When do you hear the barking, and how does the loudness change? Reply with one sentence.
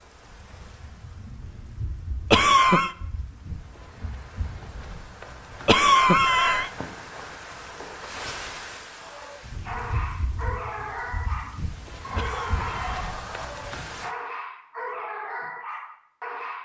The barking can be heard from 8.8 to 16.6 s, at a steady volume.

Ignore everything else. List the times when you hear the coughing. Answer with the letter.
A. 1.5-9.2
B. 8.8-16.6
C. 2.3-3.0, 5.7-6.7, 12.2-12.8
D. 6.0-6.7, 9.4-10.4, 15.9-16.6
C.